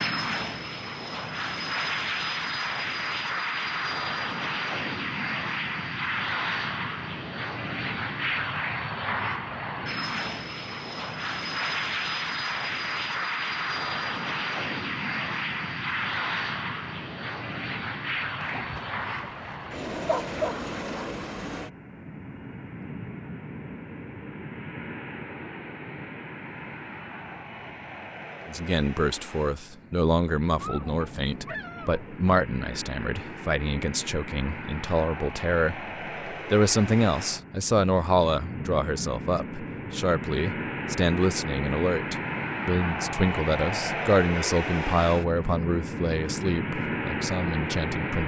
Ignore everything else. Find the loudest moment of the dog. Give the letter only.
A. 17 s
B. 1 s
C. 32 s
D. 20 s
D.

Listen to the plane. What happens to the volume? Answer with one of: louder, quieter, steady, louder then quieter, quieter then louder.
quieter then louder.